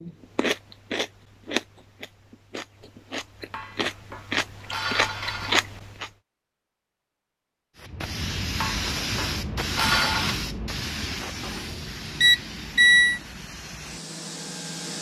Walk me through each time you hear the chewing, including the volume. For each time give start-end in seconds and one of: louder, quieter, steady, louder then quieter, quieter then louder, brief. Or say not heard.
0.0-6.1 quieter then louder.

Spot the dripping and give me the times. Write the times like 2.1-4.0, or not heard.
not heard.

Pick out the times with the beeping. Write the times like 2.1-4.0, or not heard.
11.4-13.2.